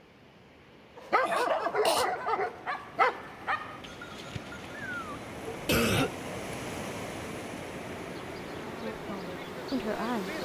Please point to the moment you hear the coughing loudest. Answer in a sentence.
The loudest moment of the coughing is at 6 seconds.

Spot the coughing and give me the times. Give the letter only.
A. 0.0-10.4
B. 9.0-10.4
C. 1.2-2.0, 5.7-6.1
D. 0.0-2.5
C.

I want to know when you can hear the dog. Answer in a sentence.
You can hear the dog from 0.9 to 6.2 s.